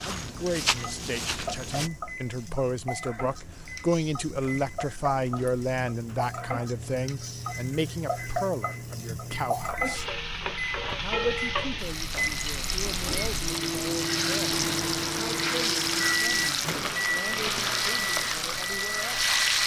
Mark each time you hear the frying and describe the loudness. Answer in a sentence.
You can hear the frying from 0.1 to 19.6 s, getting louder.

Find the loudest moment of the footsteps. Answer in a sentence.
The volume of the footsteps peaks at 1 second.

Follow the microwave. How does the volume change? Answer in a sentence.
The volume of the microwave goes up.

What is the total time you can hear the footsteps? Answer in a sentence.
The footsteps can be heard for 2 seconds in total.